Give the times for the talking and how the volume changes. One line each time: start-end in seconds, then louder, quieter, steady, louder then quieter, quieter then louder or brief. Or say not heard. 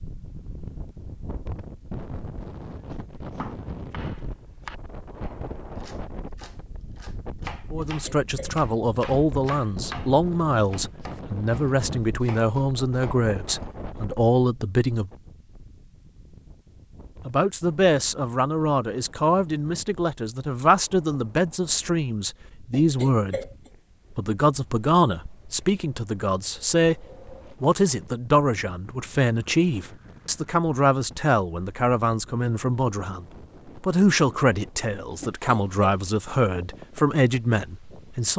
7.7-15.1 steady
17.2-23.4 steady
24.1-38.3 steady.